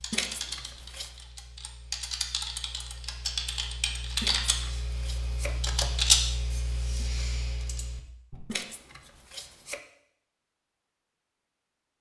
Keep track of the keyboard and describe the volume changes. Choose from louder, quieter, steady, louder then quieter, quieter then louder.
louder then quieter.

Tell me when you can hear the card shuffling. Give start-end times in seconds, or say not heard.
0.1-1.1, 4.2-6.0, 8.4-9.8.